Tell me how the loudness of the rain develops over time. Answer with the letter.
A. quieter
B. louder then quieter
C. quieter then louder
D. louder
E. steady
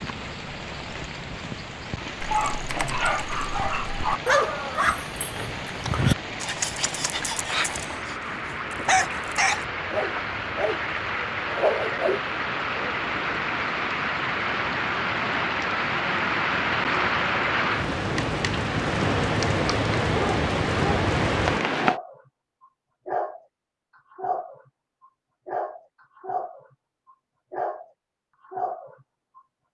D.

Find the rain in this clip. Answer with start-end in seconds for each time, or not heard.
0.0-22.0.